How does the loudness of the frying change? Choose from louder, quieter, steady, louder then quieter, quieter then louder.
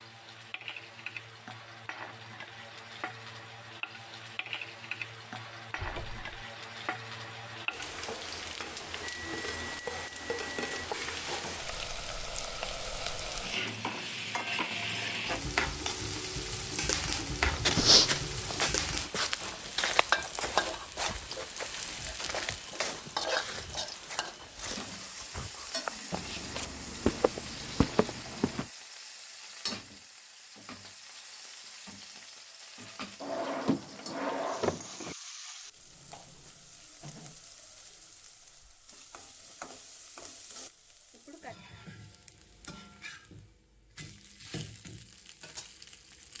louder then quieter.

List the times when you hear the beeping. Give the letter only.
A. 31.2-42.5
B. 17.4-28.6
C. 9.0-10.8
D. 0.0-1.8
C.